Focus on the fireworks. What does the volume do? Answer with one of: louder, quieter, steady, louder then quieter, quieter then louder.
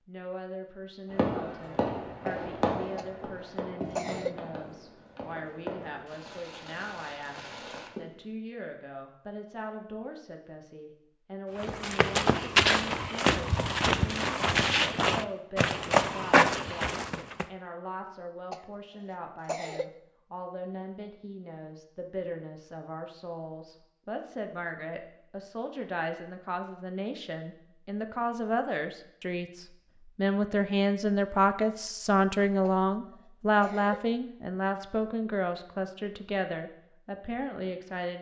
quieter.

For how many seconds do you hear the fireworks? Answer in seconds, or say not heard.
7 s.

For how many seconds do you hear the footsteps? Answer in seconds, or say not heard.
6 s.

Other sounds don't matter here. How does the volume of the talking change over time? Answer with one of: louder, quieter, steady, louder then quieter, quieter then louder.
louder.